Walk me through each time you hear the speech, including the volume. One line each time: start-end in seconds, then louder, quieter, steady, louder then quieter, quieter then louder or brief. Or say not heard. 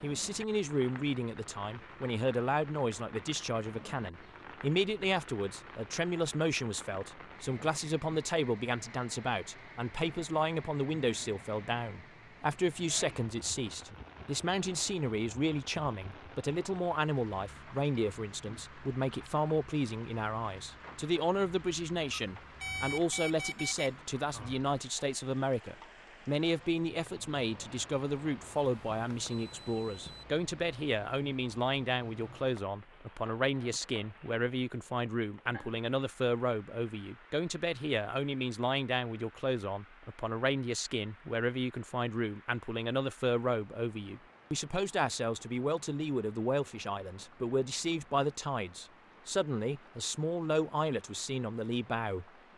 0.0-52.2 steady.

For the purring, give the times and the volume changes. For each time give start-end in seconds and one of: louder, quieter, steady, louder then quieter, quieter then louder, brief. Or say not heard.
not heard.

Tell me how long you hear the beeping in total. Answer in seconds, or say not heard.
4 s.